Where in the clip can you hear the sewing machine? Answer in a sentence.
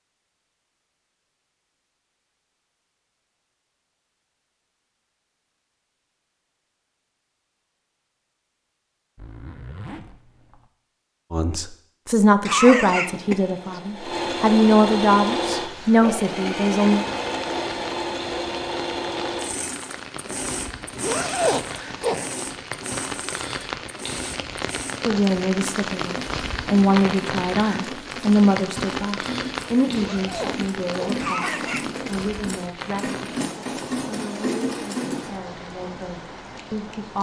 The sewing machine can be heard from 12.9 to 35.4 s.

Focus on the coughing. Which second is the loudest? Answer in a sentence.
The volume of the coughing peaks at 13 seconds.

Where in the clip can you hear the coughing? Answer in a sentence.
The coughing can be heard from 12.4 to 13.8 s and from 31.1 to 32.1 s.